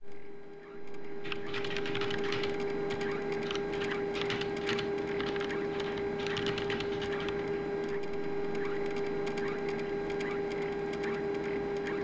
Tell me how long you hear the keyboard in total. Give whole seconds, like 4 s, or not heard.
6 s.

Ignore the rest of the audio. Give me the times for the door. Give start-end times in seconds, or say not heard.
not heard.